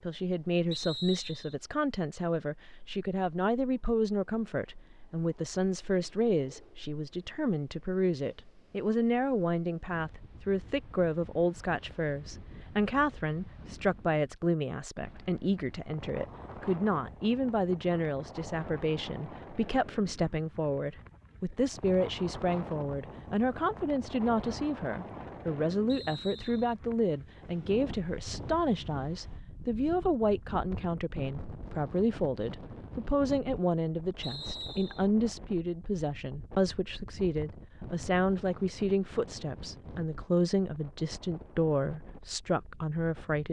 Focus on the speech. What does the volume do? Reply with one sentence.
The loudness of the speech stays about the same.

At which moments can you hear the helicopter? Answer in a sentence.
You can't hear the helicopter here.